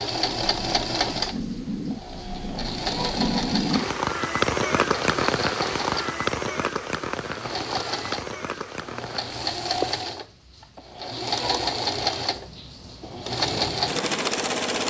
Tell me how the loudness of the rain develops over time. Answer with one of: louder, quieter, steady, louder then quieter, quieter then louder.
louder then quieter.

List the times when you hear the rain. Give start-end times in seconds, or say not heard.
0.2-10.1.